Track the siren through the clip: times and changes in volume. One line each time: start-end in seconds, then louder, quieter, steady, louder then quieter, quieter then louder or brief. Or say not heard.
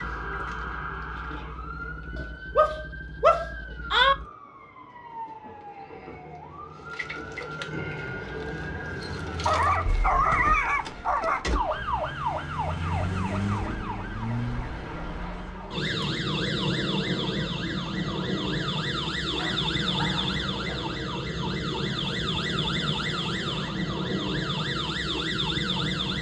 0.0-26.1 louder.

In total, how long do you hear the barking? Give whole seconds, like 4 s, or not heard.
5 s.